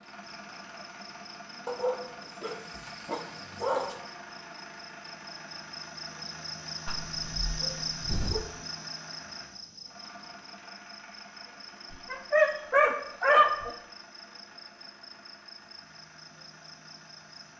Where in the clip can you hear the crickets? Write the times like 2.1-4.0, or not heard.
0.0-17.5.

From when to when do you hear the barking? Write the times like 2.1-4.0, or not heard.
1.6-4.0, 6.8-8.4, 11.9-13.8.